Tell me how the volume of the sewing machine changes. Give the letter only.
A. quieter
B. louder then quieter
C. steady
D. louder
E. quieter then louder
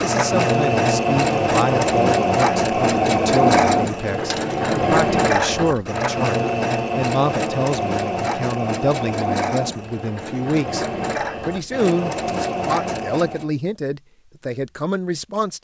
A.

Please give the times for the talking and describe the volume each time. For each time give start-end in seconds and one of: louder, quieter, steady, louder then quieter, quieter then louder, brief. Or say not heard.
0.0-15.6 steady.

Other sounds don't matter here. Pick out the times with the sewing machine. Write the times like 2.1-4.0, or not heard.
0.0-13.5.